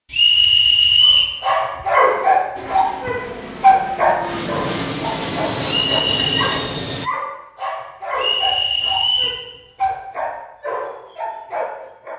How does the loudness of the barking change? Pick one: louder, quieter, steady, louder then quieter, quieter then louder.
quieter.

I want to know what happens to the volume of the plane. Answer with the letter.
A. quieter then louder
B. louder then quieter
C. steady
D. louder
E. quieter
D.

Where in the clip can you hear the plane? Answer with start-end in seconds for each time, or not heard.
2.5-7.1.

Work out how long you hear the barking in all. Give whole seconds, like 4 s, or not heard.
11 s.